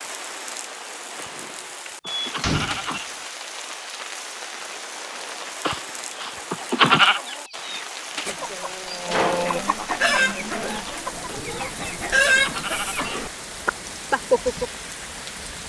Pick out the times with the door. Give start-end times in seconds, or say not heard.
2.2-3.2, 8.8-9.8.